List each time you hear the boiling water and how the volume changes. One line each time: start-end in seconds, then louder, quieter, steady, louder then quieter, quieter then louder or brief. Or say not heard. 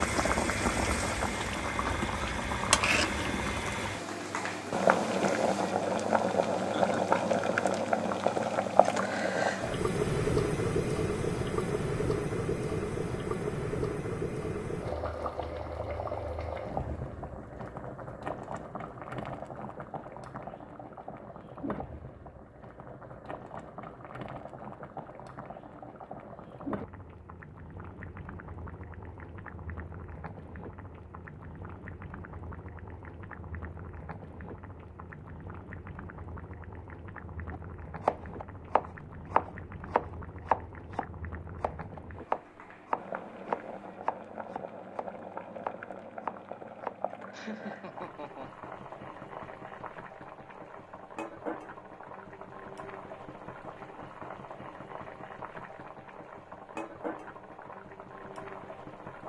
0.0-59.2 quieter.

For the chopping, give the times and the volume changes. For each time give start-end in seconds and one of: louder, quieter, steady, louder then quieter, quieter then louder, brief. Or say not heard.
37.5-47.0 quieter.